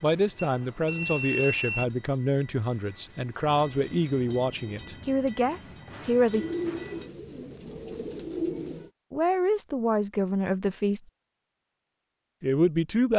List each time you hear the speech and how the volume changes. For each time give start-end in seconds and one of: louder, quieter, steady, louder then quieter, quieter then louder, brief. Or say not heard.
0.0-6.5 steady
9.1-11.0 brief
12.4-13.1 brief.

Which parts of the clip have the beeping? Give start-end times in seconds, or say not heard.
0.4-1.9.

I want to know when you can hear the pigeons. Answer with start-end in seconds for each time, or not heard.
6.3-8.9.